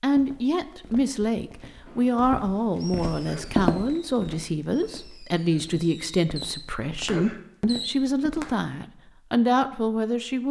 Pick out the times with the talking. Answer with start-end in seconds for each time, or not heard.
0.0-10.4.